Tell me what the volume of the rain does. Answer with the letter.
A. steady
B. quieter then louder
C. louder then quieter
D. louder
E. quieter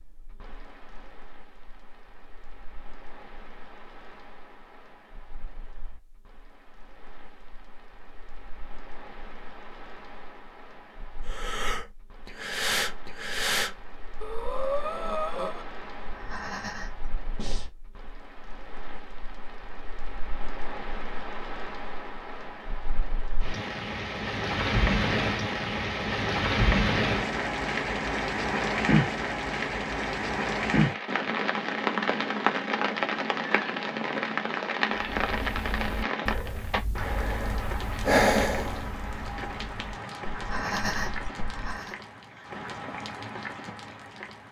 C.